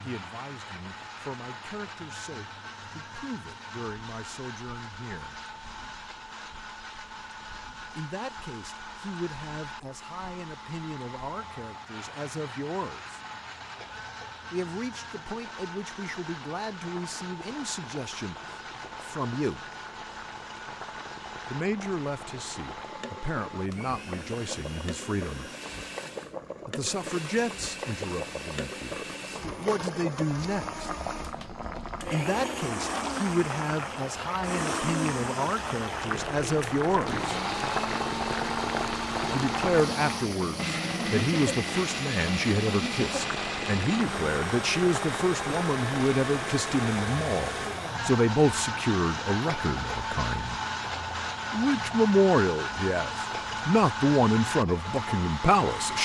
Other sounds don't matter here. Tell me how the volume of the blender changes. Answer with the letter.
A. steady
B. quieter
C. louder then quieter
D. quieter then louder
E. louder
E.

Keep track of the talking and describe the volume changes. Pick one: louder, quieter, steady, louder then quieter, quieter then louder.
louder.